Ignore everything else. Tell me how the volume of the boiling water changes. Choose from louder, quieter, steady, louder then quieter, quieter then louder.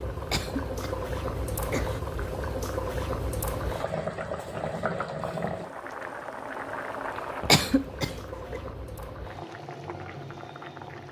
quieter.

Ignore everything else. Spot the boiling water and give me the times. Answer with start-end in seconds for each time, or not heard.
0.0-11.0.